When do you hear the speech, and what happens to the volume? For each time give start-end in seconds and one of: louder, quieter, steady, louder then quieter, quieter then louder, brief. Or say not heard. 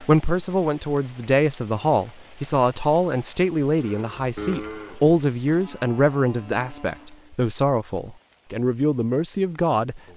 0.0-10.1 steady.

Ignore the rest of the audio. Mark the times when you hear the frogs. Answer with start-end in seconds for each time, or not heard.
not heard.